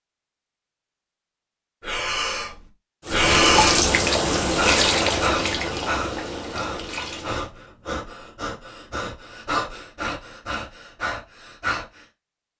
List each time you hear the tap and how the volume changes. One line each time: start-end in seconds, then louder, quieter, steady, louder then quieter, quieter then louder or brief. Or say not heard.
3.0-7.5 quieter.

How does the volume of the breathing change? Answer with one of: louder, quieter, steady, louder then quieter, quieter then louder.
quieter.